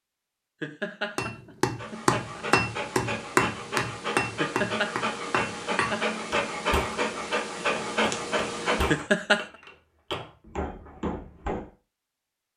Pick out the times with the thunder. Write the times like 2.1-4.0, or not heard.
not heard.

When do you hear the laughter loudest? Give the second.
9 s.